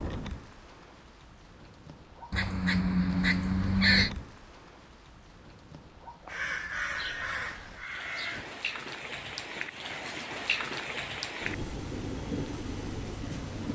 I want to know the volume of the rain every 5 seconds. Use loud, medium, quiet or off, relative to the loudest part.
medium, medium, loud.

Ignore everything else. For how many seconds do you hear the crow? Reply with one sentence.
You can hear the crow for 4 seconds altogether.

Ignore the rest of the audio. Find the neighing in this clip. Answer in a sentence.
You can't hear the neighing here.